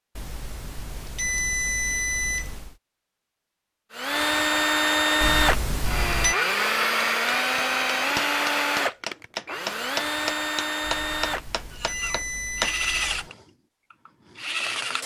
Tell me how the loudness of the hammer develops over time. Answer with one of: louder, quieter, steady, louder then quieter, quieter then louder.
quieter.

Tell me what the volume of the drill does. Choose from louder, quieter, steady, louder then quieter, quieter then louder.
quieter.